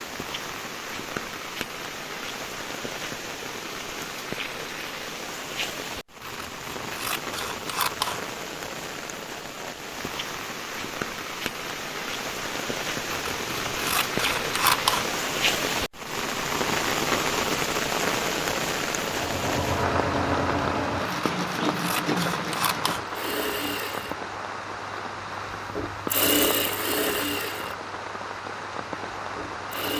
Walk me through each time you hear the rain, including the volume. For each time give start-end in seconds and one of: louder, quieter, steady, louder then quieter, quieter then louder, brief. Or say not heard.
0.0-29.9 louder then quieter.